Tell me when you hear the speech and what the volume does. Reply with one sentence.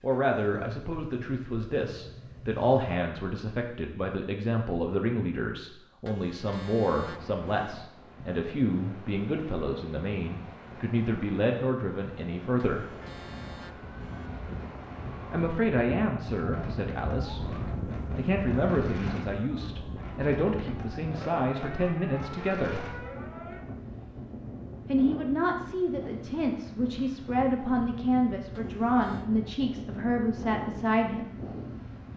The speech can be heard from 0.0 to 12.9 s, at a steady volume; from 15.3 to 22.9 s, at a steady volume; and from 24.9 to 31.3 s, at a steady volume.